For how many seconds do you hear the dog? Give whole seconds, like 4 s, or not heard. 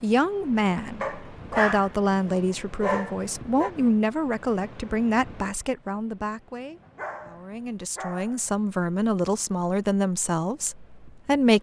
4 s.